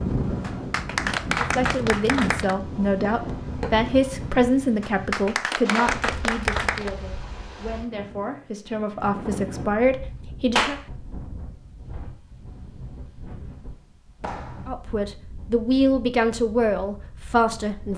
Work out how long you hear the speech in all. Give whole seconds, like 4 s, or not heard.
13 s.